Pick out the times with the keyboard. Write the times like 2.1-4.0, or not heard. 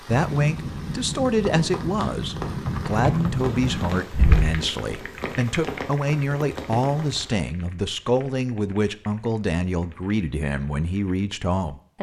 0.1-11.2.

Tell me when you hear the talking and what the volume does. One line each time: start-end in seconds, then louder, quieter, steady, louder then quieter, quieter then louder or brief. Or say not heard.
0.0-11.9 steady.